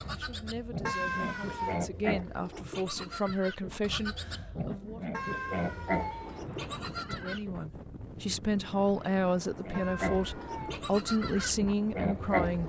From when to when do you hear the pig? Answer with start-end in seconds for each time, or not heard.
0.0-7.6, 9.7-12.6.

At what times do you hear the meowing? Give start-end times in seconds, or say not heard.
0.8-1.9, 5.1-6.4, 9.7-10.8.